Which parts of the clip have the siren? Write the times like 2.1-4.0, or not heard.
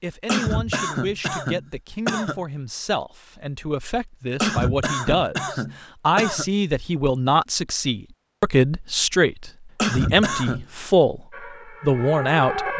11.3-12.7.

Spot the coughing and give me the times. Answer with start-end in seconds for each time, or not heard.
0.2-2.4, 4.4-6.5, 9.8-10.7.